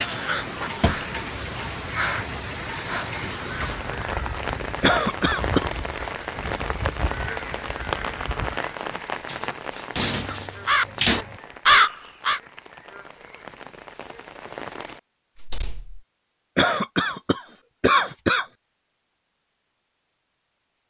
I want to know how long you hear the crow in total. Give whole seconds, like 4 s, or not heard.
11 s.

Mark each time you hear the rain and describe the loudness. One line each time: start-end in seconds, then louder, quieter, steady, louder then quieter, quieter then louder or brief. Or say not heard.
0.0-15.0 quieter.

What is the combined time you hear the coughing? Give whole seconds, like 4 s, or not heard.
3 s.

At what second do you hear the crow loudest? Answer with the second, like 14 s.
12 s.